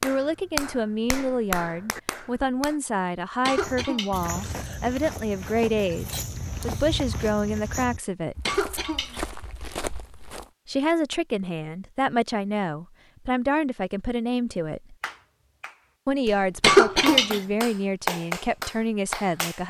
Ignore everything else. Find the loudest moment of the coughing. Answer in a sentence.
The volume of the coughing peaks at 17 seconds.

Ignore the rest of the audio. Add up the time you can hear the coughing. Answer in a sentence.
The coughing can be heard for 3 seconds in total.